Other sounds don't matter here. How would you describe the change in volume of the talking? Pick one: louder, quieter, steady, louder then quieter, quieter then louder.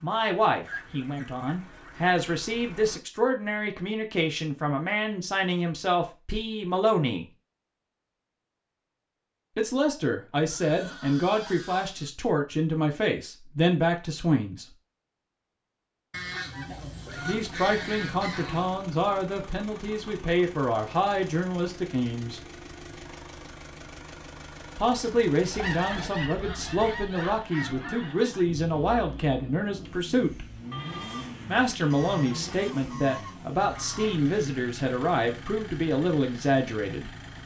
steady.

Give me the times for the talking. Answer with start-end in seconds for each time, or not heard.
0.0-7.2, 9.6-14.7, 17.2-22.4, 24.8-30.4, 31.4-37.1.